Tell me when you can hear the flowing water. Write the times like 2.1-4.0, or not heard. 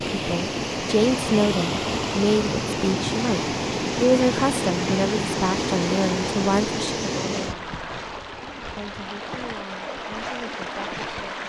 0.0-11.4.